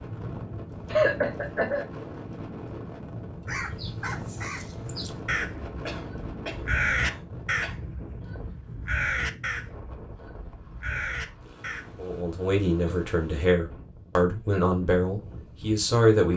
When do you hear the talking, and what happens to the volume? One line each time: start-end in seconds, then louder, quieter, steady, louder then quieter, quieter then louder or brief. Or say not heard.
11.9-16.3 steady.